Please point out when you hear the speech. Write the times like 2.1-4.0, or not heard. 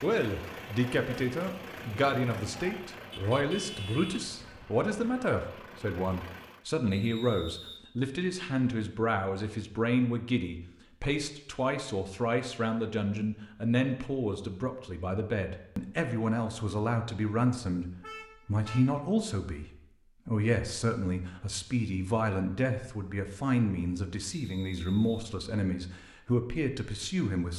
0.0-27.5.